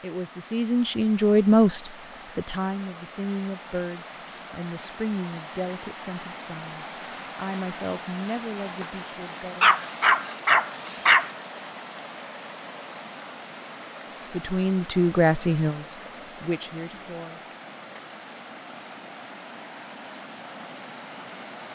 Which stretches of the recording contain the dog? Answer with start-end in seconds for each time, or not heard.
9.6-11.3.